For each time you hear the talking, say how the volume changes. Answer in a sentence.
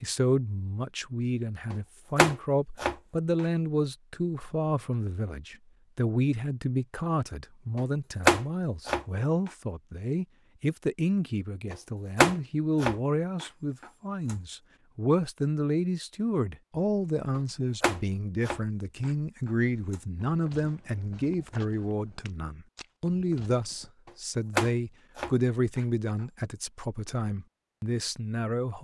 The talking can be heard from 0.0 to 28.7 s, at a steady volume.